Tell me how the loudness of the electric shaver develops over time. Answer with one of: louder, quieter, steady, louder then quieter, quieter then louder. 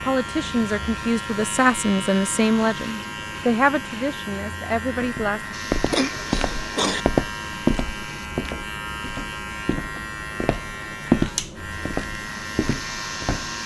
steady.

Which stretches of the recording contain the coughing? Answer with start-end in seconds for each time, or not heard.
5.9-7.0.